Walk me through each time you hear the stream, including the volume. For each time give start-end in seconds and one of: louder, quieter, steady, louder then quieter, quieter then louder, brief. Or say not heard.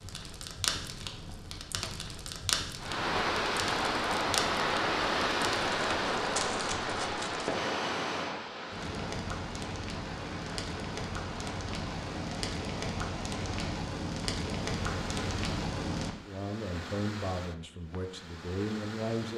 2.8-19.3 quieter.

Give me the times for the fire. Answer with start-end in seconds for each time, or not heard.
0.0-16.1.